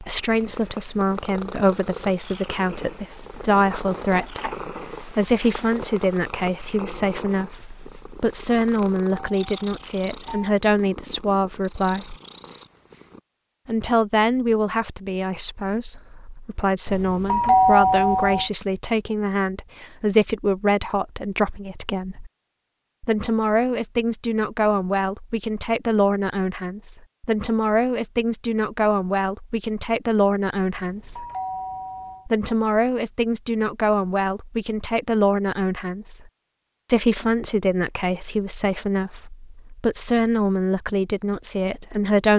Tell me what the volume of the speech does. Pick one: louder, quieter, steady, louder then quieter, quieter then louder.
steady.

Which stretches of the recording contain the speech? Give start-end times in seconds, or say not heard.
0.0-12.2, 13.7-22.3, 23.0-31.2, 32.2-36.2, 36.9-42.3.